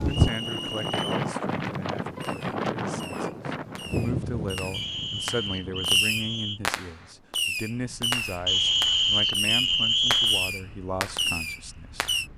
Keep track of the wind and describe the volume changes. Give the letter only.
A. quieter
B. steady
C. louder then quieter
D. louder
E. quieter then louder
A.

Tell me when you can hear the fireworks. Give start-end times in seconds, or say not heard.
2.1-12.3.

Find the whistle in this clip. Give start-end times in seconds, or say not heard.
0.1-1.3, 4.7-6.6, 8.4-10.5.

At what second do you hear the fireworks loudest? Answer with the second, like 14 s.
6 s.